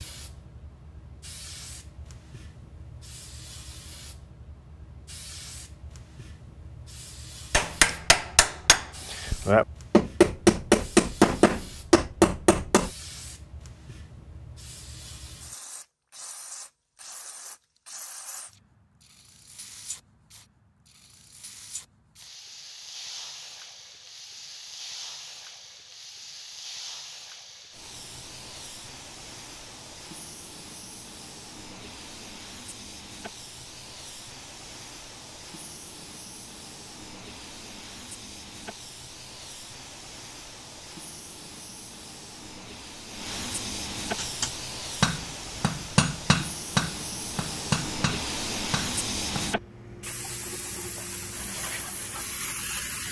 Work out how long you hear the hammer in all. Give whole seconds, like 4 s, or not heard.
11 s.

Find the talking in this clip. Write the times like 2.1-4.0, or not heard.
not heard.